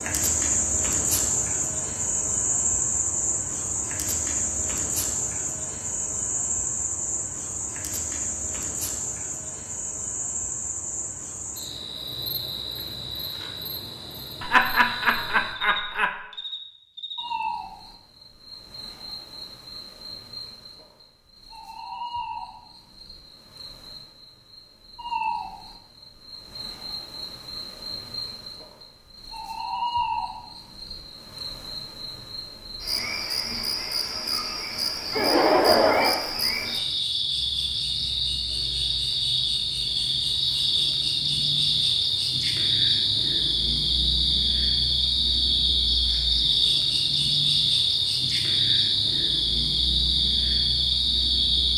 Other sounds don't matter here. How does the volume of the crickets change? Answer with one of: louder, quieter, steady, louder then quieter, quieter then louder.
quieter then louder.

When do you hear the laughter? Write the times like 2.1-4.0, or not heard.
14.4-16.1, 35.1-36.2.